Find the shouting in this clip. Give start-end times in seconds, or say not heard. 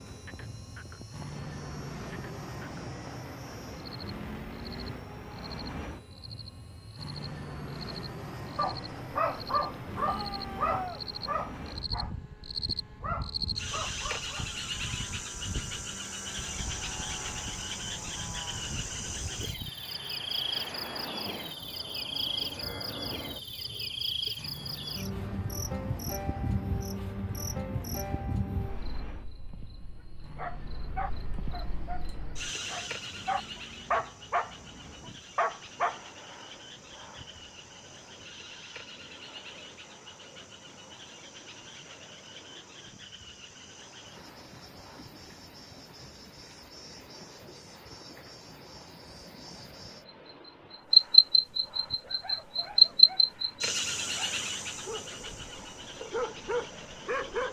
10.0-11.0.